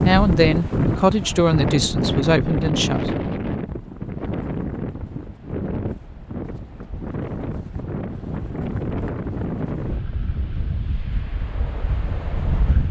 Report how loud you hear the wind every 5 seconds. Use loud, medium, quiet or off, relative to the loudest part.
loud, medium, medium.